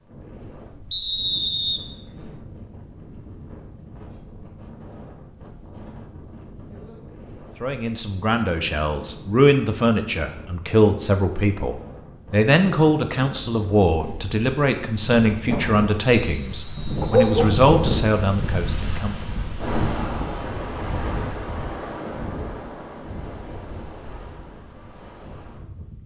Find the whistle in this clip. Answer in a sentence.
The whistle can be heard from 0.9 to 2.3 s and from 16.1 to 17.3 s.